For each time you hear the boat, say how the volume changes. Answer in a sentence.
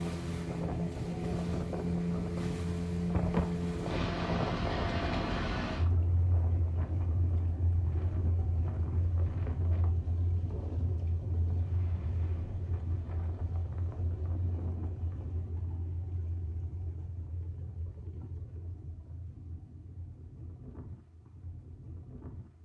The boat can be heard from 0.0 to 22.6 s, getting quieter.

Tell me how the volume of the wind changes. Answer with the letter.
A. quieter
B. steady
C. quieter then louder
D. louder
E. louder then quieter
A.